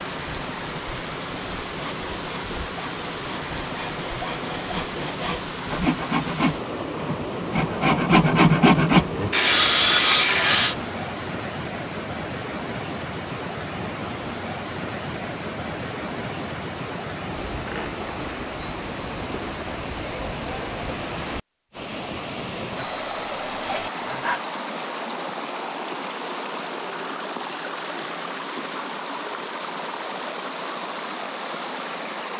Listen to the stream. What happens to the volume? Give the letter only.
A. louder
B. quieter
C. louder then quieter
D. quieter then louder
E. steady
E.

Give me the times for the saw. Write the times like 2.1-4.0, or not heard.
1.8-10.8, 22.8-24.4.